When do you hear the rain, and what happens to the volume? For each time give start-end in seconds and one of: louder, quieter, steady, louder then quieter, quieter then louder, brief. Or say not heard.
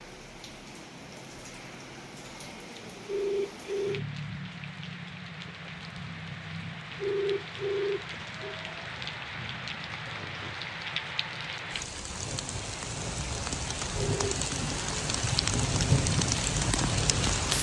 0.0-17.5 louder.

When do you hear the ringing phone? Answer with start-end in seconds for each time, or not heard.
3.0-4.0, 7.0-8.6, 13.9-14.4.